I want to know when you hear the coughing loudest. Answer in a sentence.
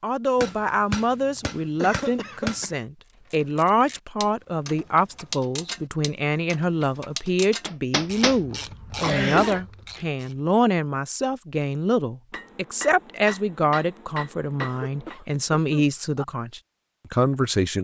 The volume of the coughing peaks at 9 seconds.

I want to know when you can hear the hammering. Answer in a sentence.
The hammering can be heard from 0.4 to 2.6 s, from 7.7 to 8.4 s and from 12.3 to 15.2 s.